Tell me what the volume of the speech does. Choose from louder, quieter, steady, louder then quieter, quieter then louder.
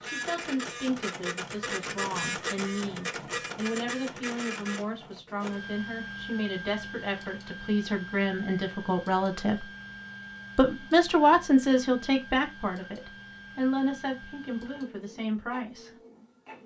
louder then quieter.